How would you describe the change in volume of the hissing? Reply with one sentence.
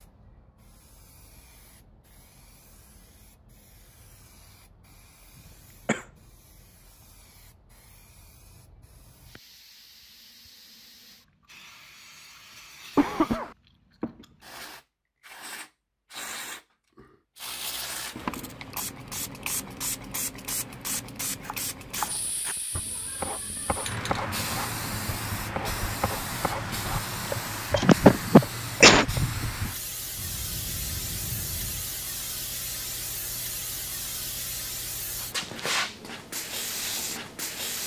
The loudness of the hissing goes up.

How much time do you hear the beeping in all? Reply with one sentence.
You can hear the beeping for 2 seconds altogether.